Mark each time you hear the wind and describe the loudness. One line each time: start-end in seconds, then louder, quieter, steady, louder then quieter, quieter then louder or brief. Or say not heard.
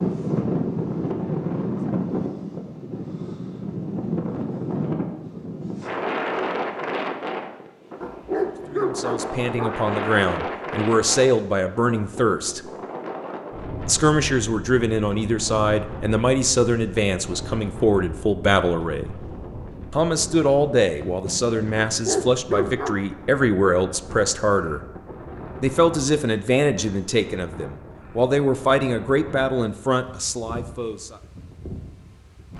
0.0-32.5 quieter.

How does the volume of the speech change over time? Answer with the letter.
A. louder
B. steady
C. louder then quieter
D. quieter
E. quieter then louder
B.